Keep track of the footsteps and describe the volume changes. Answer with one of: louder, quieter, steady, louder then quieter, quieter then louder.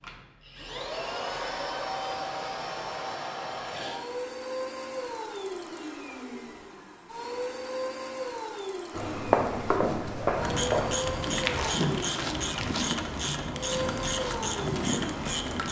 quieter.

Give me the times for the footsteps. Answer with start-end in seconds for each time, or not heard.
8.9-15.6.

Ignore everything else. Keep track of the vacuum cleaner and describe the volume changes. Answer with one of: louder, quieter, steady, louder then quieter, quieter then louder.
steady.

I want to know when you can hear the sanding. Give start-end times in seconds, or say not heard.
not heard.